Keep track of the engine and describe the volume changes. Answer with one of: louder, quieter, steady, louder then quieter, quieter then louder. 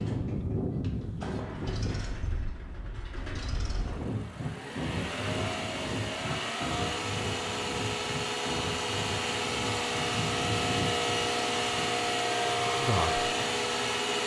louder.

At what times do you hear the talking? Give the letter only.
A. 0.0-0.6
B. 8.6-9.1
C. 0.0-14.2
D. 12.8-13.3
D.